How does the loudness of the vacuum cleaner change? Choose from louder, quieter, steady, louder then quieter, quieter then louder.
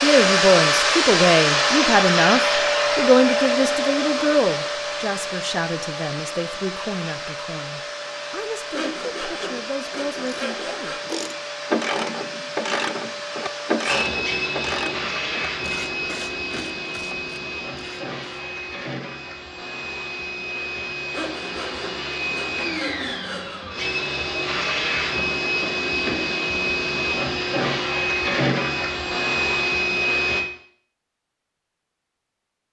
quieter then louder.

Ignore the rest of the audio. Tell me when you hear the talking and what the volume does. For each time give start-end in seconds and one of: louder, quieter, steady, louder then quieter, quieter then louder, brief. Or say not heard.
0.0-11.0 quieter.